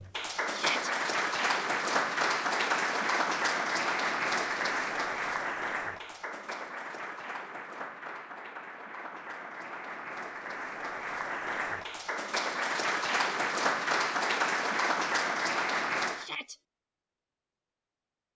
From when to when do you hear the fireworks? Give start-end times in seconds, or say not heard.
not heard.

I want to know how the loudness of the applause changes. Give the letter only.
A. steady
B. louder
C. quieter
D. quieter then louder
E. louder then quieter
D.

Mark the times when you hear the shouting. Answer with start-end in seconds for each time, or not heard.
0.5-0.9, 16.1-16.6.